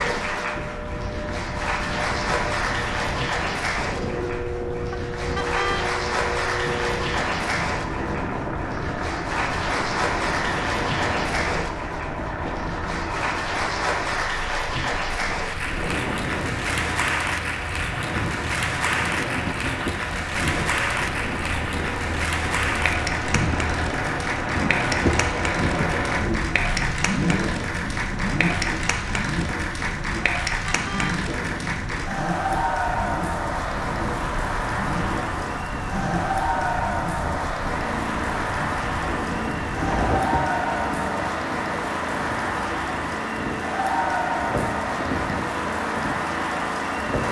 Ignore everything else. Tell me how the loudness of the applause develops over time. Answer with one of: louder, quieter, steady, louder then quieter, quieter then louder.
steady.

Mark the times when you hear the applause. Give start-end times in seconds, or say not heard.
0.0-47.2.